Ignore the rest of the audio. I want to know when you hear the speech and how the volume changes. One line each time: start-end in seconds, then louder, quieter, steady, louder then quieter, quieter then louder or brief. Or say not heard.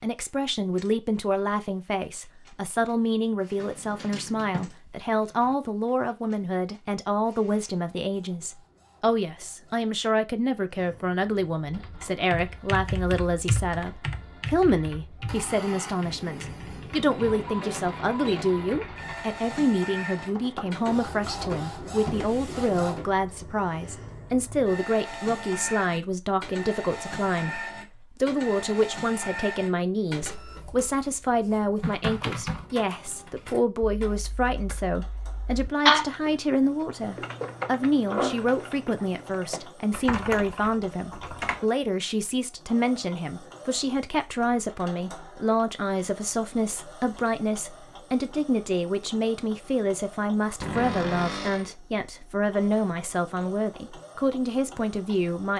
0.0-55.5 steady.